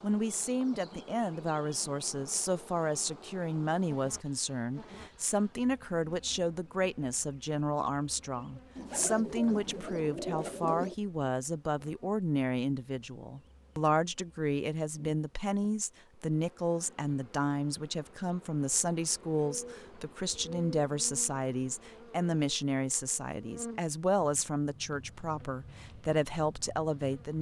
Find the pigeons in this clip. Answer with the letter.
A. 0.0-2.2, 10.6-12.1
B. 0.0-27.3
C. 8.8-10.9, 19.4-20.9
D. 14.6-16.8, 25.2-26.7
C.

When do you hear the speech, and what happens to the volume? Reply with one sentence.
The speech can be heard from 0.0 to 27.3 s, at a steady volume.